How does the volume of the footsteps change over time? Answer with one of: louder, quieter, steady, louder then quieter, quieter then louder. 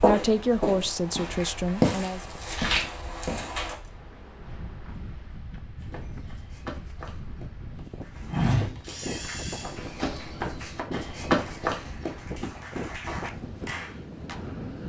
quieter then louder.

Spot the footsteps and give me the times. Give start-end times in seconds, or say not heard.
0.0-3.8, 5.8-12.4.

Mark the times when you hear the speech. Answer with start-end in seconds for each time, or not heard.
0.0-2.2.